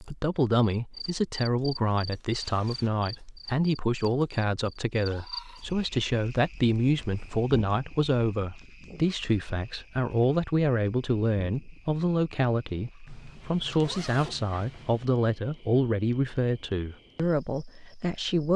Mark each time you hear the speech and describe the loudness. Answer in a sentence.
The speech can be heard from 0.0 to 18.5 s, at a steady volume.